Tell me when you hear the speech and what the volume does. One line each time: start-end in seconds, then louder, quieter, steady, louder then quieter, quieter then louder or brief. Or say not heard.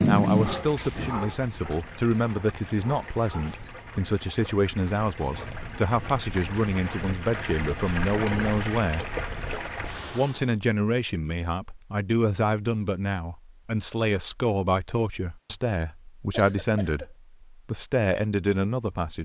0.1-9.2 steady
10.1-19.2 steady.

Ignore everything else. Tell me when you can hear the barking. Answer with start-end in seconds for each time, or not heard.
0.0-3.7.